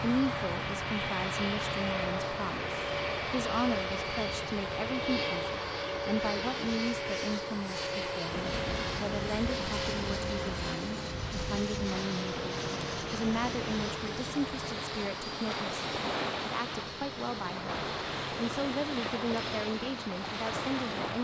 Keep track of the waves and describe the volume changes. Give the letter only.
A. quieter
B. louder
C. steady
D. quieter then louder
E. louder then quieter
C.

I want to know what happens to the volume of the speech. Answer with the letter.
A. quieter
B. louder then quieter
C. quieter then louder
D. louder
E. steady
E.